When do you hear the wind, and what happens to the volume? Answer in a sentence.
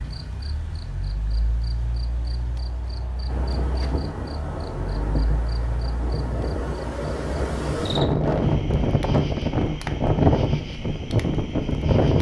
The wind can be heard from 3.2 to 12.1 s, getting louder.